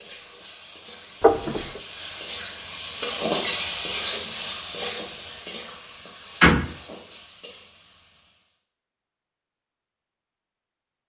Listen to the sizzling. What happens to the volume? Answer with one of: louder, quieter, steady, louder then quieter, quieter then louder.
louder then quieter.